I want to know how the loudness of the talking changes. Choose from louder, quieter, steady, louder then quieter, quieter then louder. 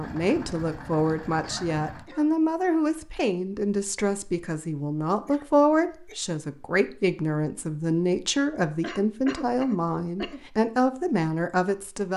steady.